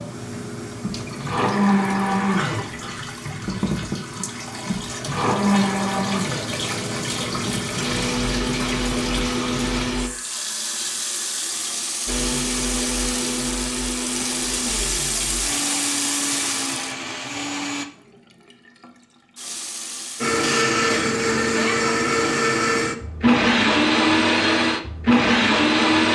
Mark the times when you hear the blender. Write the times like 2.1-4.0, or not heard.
0.3-10.1, 12.1-17.9, 20.2-26.0.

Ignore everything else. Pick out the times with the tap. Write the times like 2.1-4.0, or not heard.
0.0-20.4.